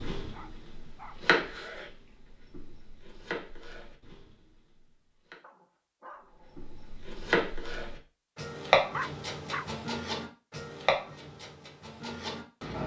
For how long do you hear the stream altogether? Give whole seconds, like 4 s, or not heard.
not heard.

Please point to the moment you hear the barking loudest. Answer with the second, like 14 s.
9 s.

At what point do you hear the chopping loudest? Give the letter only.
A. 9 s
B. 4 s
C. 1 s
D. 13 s
A.